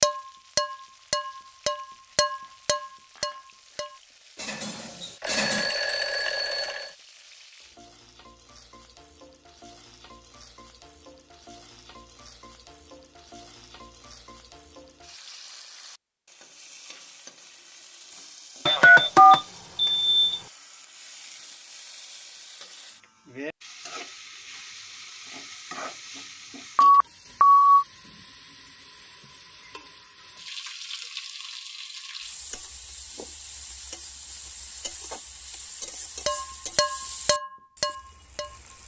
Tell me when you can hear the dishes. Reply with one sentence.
You can hear the dishes from 0.0 to 5.7 s and from 36.2 to 38.8 s.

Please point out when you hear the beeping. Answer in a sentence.
The beeping can be heard from 5.2 to 6.9 s, from 18.6 to 20.4 s and from 26.8 to 27.9 s.